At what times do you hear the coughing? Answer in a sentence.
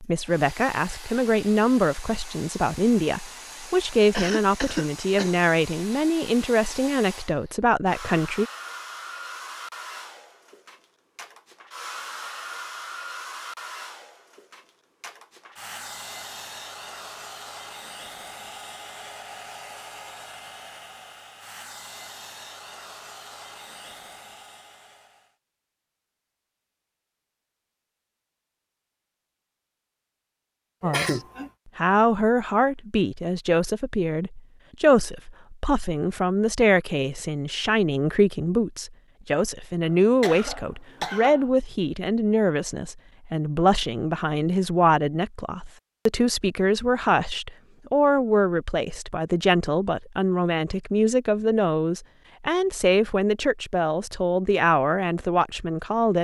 You can hear the coughing from 4.1 to 5.3 s, from 30.8 to 31.5 s and from 40.0 to 41.5 s.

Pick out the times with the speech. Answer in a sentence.
The speech can be heard from 0.0 to 8.4 s and from 30.8 to 56.1 s.